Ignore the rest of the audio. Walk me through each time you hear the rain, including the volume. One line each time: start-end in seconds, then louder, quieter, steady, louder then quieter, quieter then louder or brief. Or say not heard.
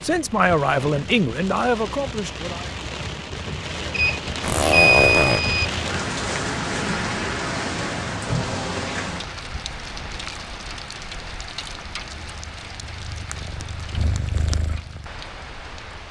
0.0-16.0 louder then quieter.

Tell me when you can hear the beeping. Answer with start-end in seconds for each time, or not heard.
3.9-5.7.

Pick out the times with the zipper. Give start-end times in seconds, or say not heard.
4.4-5.4.